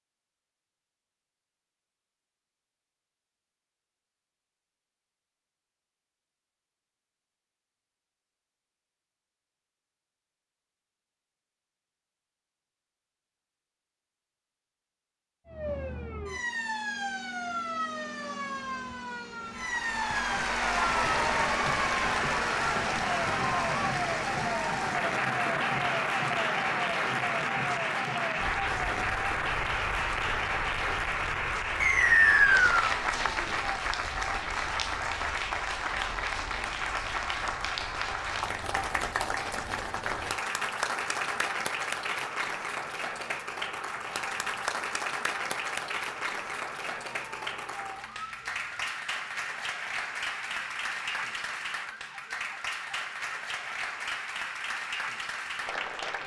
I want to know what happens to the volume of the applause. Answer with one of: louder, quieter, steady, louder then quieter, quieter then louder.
quieter.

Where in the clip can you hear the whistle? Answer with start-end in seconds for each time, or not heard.
31.8-32.9.